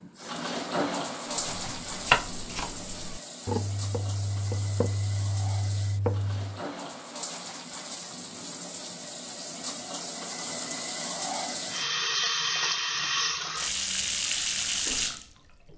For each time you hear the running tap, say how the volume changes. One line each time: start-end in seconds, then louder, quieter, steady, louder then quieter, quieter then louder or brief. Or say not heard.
0.0-15.7 quieter then louder.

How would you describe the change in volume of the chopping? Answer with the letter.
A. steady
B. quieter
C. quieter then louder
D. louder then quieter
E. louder
C.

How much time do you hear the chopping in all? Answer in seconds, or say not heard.
5 s.